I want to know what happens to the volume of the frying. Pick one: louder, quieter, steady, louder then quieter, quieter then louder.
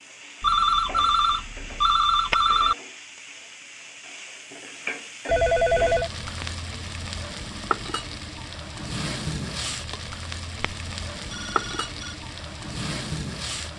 louder.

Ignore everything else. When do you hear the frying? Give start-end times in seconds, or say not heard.
0.0-13.7.